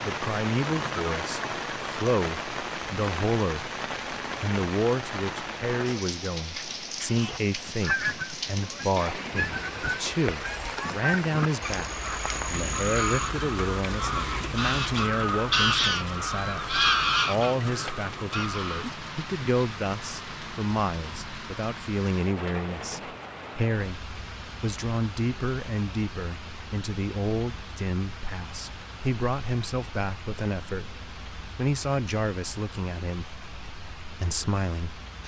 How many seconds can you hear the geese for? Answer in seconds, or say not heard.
12 s.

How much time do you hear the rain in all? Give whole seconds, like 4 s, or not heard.
35 s.